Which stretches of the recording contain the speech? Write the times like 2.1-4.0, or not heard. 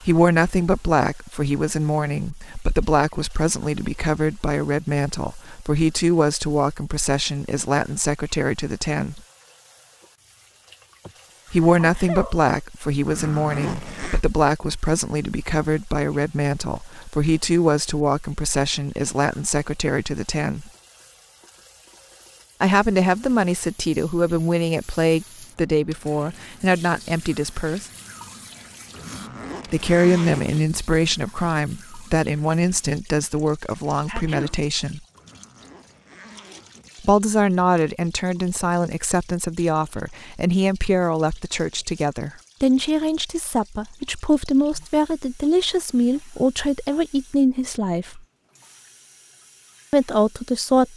0.0-9.2, 11.5-20.7, 22.6-27.9, 29.7-35.0, 37.0-48.2, 49.9-50.9.